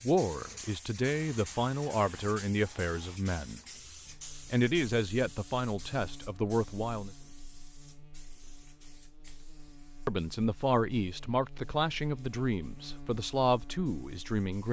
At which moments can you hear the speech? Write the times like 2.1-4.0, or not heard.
0.0-3.6, 4.5-7.1, 10.1-14.6.